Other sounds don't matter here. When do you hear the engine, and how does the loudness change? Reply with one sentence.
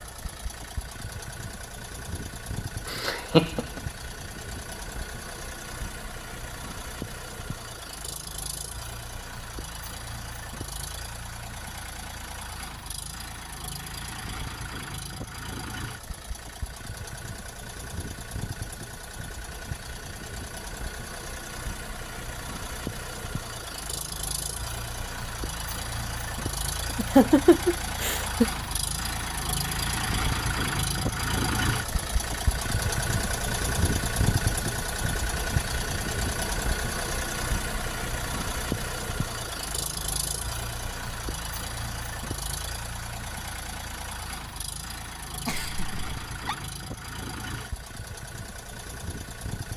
You can hear the engine from 0.0 to 49.7 s, getting louder then quieter.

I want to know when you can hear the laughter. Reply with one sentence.
You can hear the laughter from 2.9 to 3.6 s, from 26.9 to 28.4 s and from 45.5 to 46.5 s.